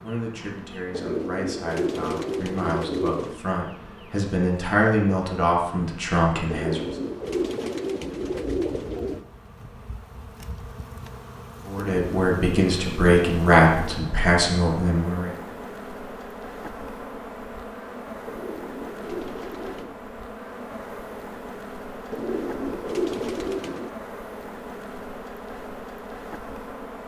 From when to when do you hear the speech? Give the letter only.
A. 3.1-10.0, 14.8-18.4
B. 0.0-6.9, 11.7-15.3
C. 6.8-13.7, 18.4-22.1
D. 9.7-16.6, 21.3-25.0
B.